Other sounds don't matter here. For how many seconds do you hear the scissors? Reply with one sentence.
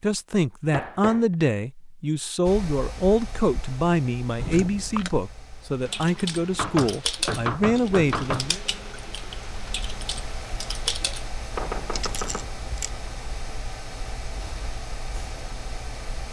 You can hear the scissors for 2 seconds altogether.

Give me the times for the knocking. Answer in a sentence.
The knocking can be heard from 0.7 to 1.4 s, from 6.5 to 8.5 s and from 11.6 to 12.5 s.